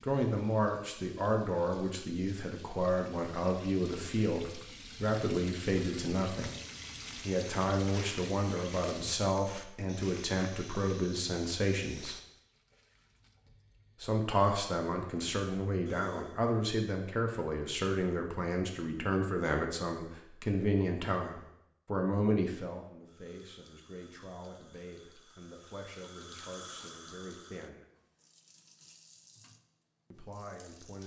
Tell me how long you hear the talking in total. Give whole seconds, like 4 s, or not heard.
26 s.